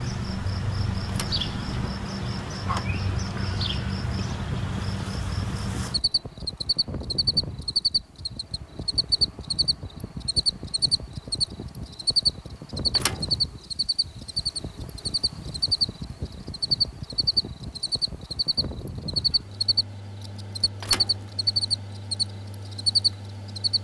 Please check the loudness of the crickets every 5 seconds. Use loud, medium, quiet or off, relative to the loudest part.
medium, loud, loud, loud, loud.